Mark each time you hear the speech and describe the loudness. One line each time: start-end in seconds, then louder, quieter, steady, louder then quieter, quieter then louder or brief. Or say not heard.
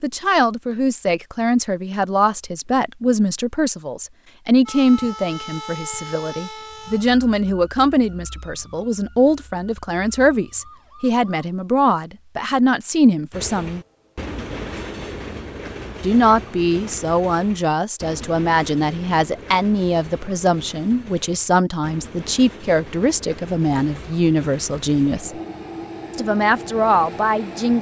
0.0-13.8 steady
16.0-25.3 steady
26.1-27.7 brief.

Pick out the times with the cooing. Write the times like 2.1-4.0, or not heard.
not heard.